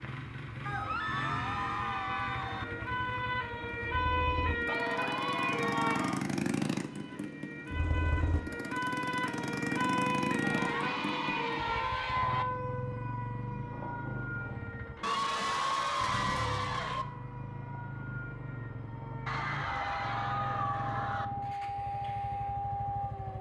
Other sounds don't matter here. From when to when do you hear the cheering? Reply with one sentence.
The cheering can be heard from 0.7 to 2.6 s, from 4.7 to 6.2 s, from 10.4 to 12.4 s, from 15.0 to 17.1 s and from 19.2 to 21.2 s.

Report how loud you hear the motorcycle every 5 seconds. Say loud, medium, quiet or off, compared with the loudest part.
medium, loud, loud, medium, medium.